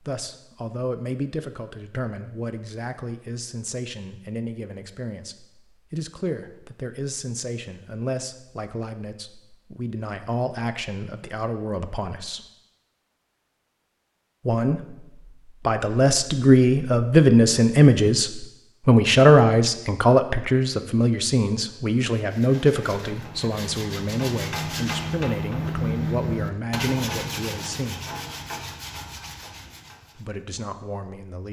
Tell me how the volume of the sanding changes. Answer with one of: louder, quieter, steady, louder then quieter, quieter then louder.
louder then quieter.